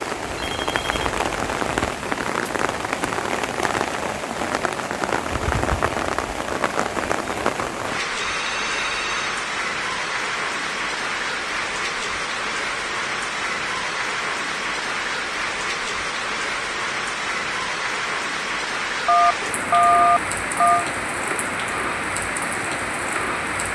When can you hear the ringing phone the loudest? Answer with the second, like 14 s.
20 s.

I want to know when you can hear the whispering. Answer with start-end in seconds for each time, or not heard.
not heard.